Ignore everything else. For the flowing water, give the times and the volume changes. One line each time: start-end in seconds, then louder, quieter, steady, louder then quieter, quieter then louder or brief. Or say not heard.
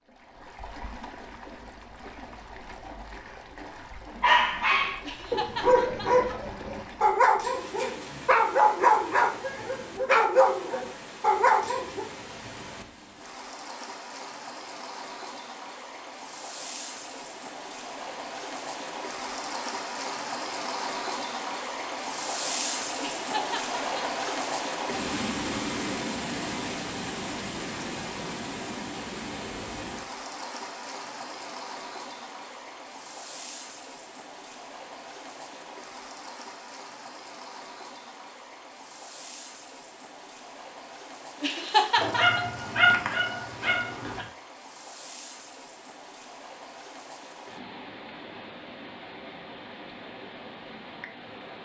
0.1-51.6 louder then quieter.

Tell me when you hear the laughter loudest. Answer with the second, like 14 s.
42 s.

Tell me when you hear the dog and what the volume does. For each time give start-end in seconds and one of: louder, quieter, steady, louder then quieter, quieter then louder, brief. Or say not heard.
4.2-12.1 steady
41.5-44.2 brief.